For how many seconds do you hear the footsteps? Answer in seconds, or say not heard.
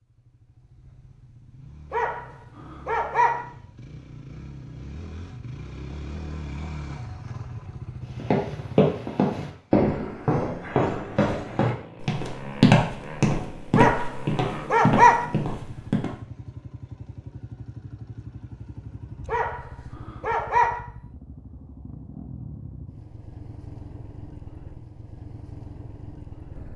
8 s.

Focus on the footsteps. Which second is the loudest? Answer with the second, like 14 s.
13 s.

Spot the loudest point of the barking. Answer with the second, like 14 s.
15 s.